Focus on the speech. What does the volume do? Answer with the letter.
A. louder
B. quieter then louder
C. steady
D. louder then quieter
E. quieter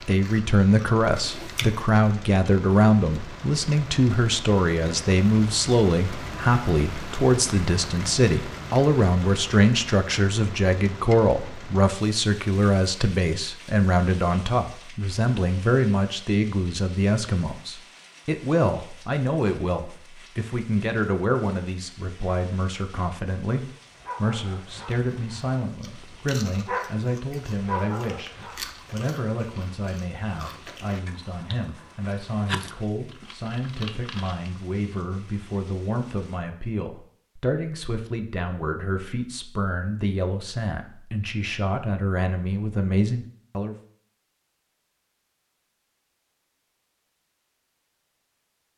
E.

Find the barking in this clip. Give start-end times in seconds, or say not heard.
23.9-28.9.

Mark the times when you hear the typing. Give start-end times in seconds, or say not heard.
not heard.